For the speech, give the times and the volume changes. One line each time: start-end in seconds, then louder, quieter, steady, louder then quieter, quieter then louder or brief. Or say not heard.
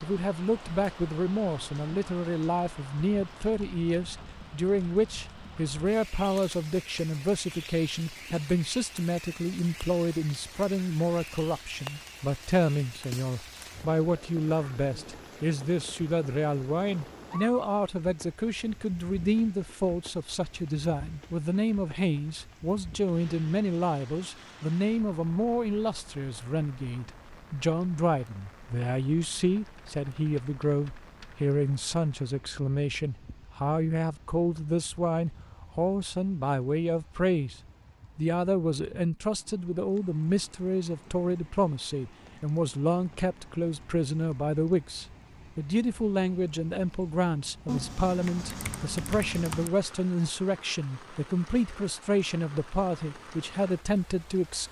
0.0-37.5 steady
38.1-54.6 steady.